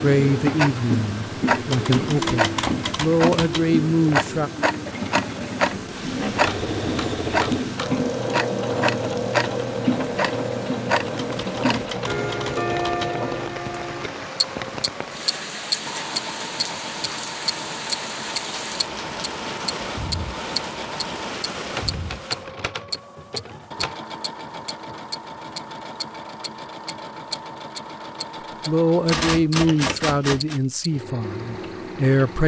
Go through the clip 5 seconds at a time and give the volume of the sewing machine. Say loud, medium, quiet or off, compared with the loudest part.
loud, loud, loud, medium, medium, medium, medium.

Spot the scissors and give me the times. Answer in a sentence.
You can't hear the scissors here.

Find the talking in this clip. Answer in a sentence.
You can hear the talking from 0.0 to 4.5 s and from 28.6 to 32.4 s.